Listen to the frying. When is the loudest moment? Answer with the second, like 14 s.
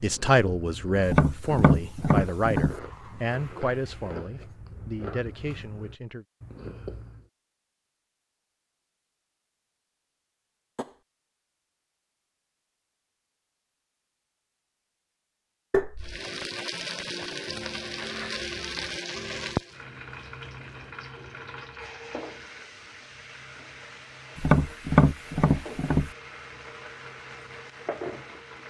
19 s.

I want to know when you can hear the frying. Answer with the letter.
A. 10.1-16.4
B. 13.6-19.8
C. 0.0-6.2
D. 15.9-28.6
D.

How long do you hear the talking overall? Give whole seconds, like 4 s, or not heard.
6 s.